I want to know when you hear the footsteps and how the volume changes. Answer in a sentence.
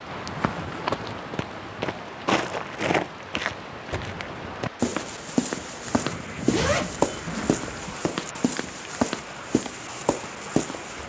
The footsteps can be heard from 0.1 to 11.0 s, at a steady volume.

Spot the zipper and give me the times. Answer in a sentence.
The zipper can be heard from 0.2 to 0.8 s and from 6.5 to 8.0 s.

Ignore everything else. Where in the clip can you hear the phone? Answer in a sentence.
The phone can't be heard in this clip.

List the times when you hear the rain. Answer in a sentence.
The rain can be heard from 0.0 to 11.0 s.